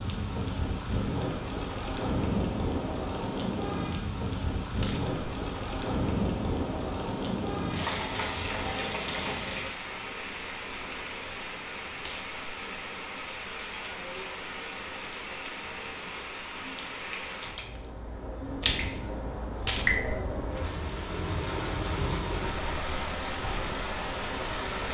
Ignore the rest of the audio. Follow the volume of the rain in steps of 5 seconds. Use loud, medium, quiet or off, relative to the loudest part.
loud, loud, medium, loud, loud.